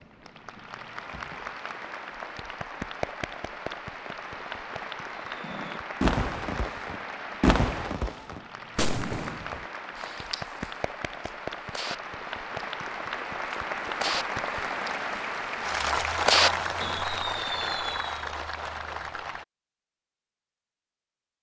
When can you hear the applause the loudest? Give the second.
16 s.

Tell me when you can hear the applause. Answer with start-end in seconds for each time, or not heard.
0.0-19.4.